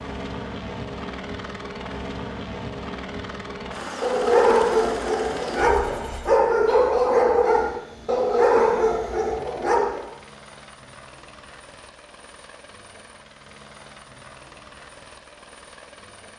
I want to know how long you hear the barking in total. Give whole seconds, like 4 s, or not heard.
6 s.